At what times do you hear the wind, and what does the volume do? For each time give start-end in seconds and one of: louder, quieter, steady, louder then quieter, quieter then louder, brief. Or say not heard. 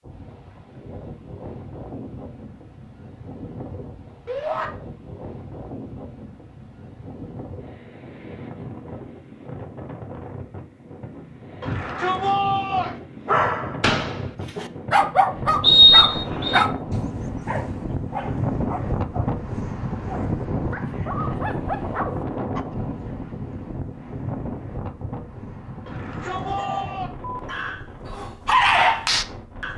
0.0-29.7 louder then quieter.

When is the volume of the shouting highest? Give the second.
12 s.